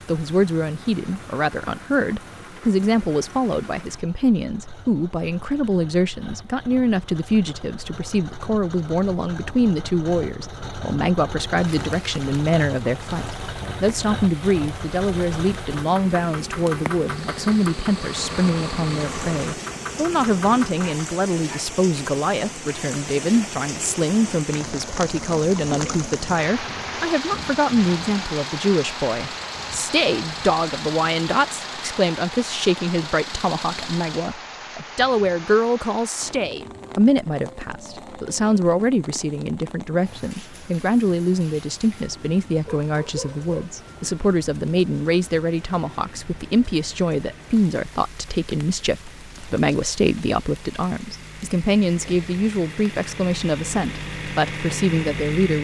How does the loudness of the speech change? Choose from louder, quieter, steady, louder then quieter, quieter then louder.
steady.